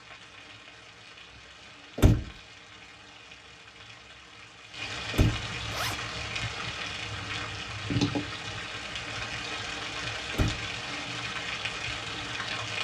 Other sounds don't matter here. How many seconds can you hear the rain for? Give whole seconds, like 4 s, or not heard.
13 s.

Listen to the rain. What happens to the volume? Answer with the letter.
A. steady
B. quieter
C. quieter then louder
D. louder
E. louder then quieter
D.